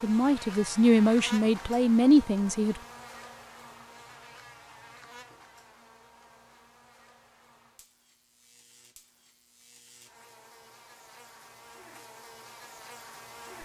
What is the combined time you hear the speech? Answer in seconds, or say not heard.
3 s.